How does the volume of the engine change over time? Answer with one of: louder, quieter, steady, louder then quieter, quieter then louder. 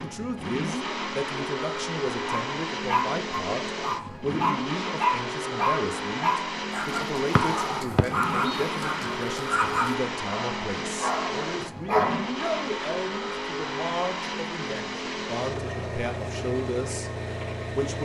steady.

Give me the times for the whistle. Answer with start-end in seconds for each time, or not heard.
7.3-8.7.